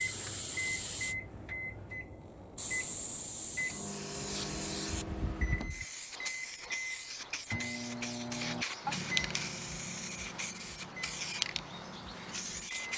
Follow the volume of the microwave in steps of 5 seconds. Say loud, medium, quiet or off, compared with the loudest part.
loud, loud, medium.